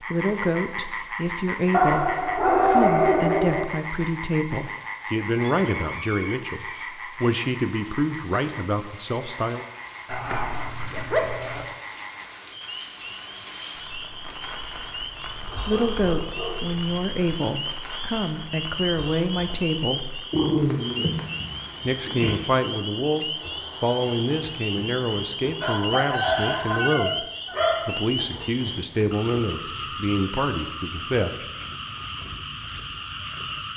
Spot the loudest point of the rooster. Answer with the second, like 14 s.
26 s.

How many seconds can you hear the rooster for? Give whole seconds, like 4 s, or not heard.
3 s.